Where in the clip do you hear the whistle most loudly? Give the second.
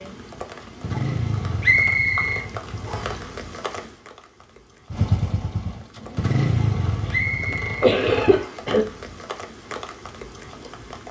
2 s.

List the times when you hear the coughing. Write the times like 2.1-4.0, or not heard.
7.0-8.8.